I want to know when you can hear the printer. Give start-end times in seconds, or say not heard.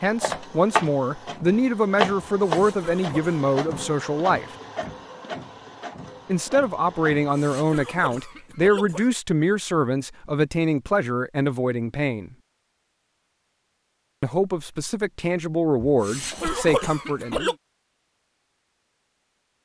0.0-7.6.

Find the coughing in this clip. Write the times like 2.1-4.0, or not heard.
2.4-3.4, 7.2-9.1, 15.8-17.6.